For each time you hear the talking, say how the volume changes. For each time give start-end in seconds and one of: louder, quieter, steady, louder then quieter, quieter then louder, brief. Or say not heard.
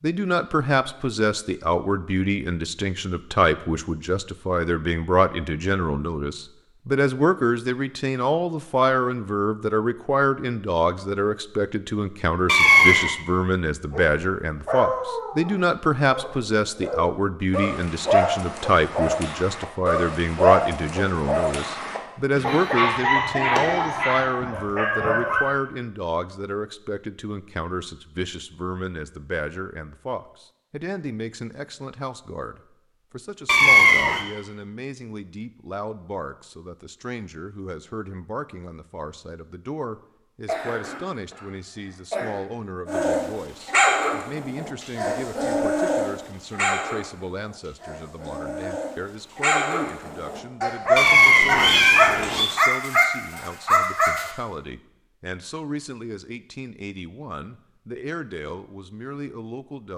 0.0-59.9 quieter.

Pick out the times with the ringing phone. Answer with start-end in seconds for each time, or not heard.
not heard.